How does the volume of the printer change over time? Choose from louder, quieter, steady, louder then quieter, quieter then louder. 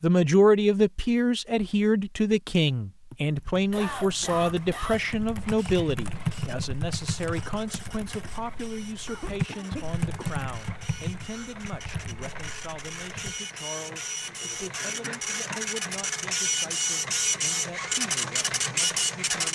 louder.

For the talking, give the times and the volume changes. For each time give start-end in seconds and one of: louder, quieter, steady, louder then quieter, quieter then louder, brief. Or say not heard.
0.0-19.5 quieter.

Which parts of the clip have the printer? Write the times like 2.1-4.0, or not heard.
4.5-19.5.